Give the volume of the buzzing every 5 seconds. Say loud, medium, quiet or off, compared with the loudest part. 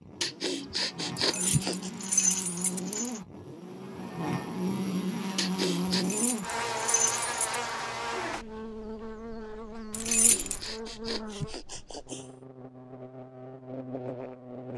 loud, loud, medium.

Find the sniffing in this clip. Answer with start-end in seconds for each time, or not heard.
0.2-1.9, 5.3-6.0, 10.1-12.3.